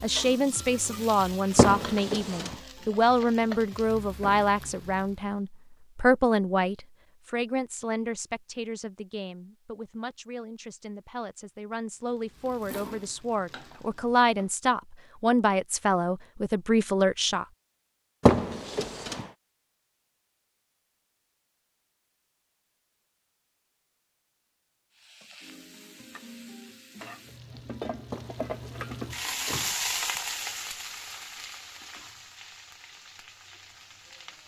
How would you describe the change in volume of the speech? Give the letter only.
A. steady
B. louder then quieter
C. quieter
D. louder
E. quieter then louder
E.